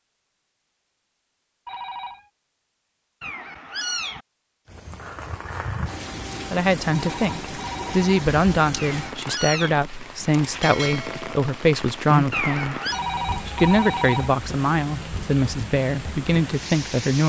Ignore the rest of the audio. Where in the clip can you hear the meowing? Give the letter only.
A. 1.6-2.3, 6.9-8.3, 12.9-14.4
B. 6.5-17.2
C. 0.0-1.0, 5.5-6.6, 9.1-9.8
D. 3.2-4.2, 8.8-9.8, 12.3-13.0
D.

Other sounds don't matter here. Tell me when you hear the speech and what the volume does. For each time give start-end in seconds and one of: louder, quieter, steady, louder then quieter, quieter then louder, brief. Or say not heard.
6.5-17.2 steady.